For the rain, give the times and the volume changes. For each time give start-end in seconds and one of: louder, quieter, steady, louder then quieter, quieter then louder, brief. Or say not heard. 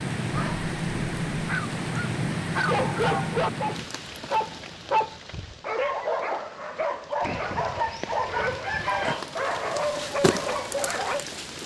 0.0-11.6 quieter then louder.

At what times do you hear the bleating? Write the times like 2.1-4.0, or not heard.
not heard.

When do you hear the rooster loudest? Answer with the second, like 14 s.
9 s.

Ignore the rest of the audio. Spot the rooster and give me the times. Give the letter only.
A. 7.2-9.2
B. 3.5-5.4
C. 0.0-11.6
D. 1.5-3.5
A.